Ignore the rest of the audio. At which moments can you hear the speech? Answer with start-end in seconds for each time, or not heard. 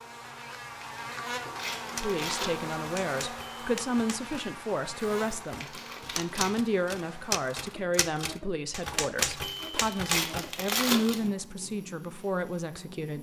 1.9-13.1.